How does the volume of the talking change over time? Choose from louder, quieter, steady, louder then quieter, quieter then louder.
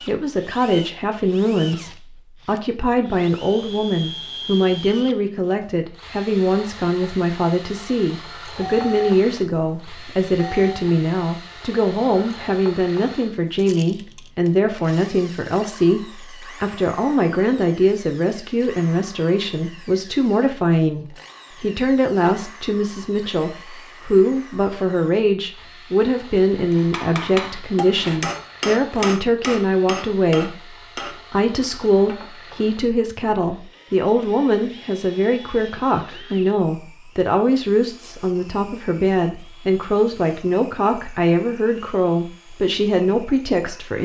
steady.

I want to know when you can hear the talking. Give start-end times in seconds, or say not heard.
0.0-43.9.